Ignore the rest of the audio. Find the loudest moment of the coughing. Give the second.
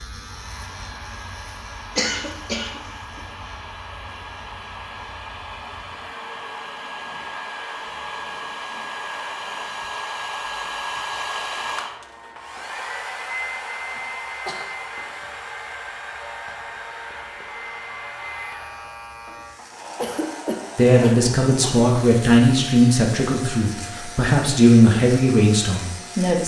2 s.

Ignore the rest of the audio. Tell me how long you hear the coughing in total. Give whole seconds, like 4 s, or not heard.
4 s.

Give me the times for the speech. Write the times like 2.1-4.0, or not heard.
20.8-26.4.